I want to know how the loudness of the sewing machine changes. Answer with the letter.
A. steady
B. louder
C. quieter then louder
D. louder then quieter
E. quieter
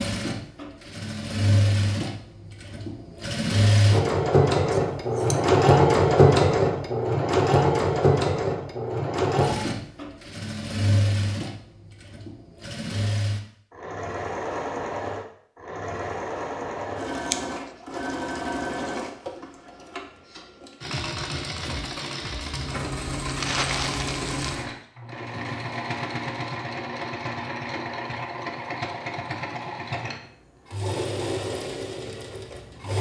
E.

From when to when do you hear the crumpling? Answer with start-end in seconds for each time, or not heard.
23.2-24.7.